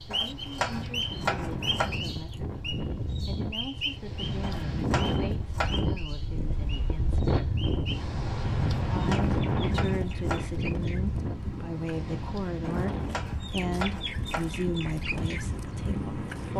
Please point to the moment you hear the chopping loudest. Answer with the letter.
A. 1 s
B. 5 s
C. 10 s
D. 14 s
A.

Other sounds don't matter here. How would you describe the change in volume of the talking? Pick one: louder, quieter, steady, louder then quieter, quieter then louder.
louder.